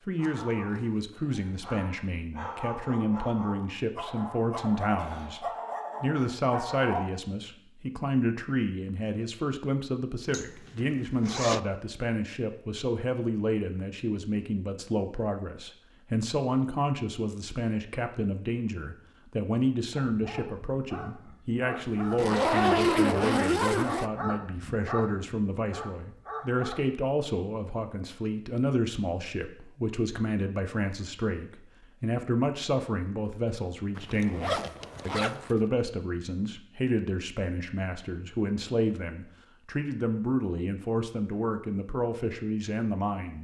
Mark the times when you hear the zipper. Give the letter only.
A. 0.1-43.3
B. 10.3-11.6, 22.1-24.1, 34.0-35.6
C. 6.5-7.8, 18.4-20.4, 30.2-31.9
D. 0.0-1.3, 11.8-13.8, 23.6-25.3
B.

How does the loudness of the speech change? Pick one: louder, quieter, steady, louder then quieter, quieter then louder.
steady.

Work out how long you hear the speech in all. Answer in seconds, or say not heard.
43 s.